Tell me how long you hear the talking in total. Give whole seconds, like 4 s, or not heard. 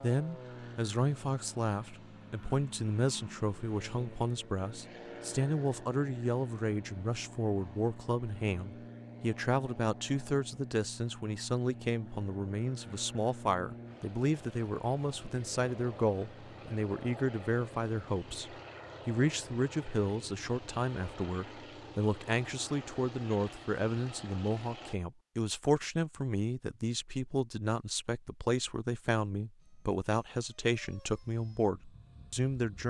33 s.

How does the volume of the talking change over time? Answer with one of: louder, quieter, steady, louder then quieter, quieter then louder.
steady.